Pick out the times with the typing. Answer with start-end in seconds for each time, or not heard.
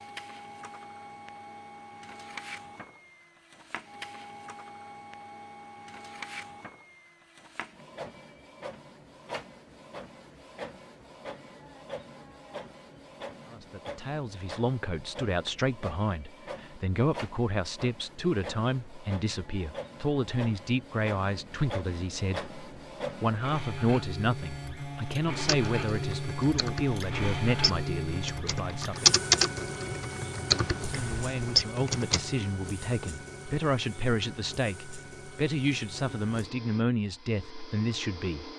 25.4-32.2.